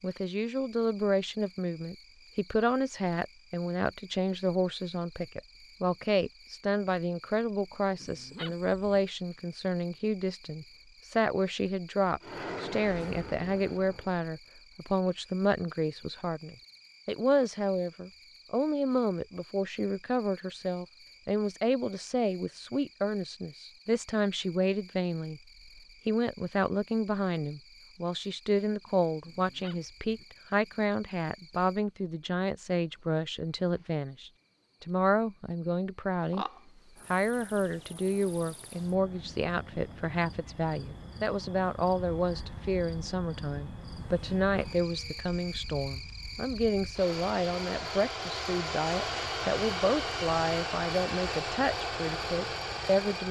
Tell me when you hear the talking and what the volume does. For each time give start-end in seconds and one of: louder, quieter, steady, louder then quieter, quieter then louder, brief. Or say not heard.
0.0-25.4 steady
26.1-36.5 steady
37.1-53.2 steady.